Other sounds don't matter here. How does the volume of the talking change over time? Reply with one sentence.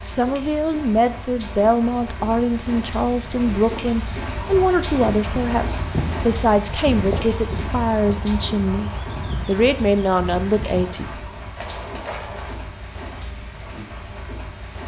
The loudness of the talking stays about the same.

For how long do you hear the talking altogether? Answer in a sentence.
You can hear the talking for 11 seconds altogether.